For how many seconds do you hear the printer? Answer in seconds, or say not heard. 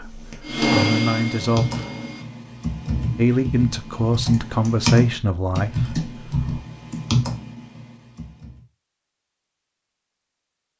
2 s.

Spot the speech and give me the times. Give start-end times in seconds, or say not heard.
0.0-1.6, 3.1-6.6.